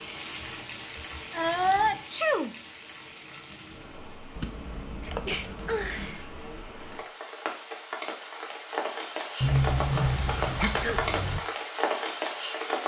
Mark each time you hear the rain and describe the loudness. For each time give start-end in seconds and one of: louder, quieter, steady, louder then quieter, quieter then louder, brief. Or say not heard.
0.0-12.8 quieter then louder.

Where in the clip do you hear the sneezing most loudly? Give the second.
2 s.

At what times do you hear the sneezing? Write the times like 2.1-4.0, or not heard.
1.3-2.5, 5.0-6.4, 9.8-11.2.